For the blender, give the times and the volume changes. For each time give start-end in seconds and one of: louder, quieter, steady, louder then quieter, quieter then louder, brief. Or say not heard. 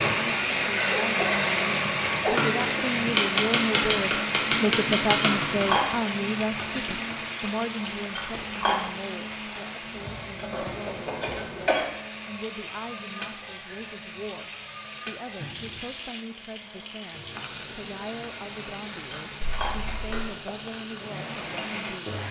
0.0-22.2 quieter then louder.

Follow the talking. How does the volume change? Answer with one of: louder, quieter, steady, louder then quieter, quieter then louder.
quieter.